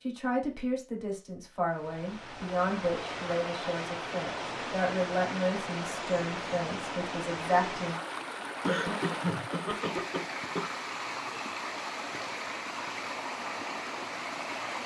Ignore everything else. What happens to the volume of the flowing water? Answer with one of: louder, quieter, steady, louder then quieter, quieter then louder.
steady.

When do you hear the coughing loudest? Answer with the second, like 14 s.
9 s.